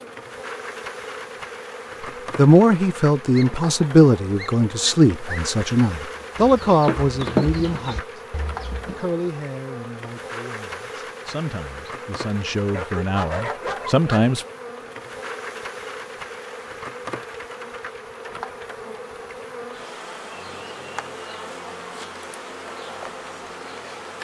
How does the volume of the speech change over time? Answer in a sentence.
The volume of the speech goes down, then up.